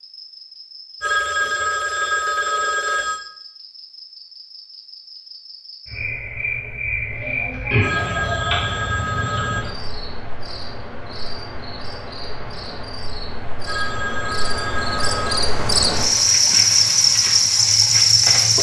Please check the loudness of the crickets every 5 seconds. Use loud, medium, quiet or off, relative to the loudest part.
quiet, medium, quiet, loud.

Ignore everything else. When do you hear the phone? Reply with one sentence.
You can hear the phone from 1.0 to 3.2 s, from 7.8 to 9.7 s and from 13.7 to 15.4 s.